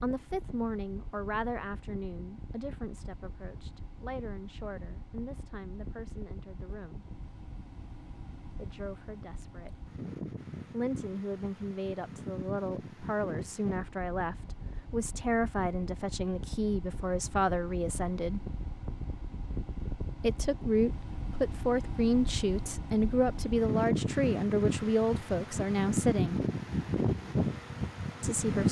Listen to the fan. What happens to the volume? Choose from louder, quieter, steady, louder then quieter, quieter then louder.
louder.